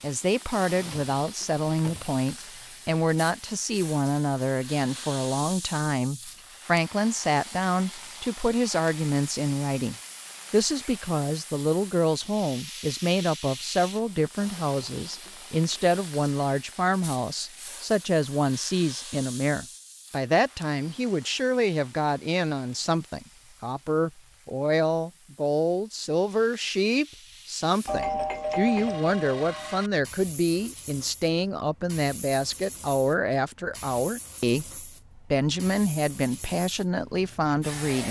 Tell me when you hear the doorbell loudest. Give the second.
28 s.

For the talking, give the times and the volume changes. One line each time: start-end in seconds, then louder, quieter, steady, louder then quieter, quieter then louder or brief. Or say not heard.
0.0-38.0 steady.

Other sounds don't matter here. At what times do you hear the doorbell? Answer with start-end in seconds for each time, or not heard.
27.9-29.9.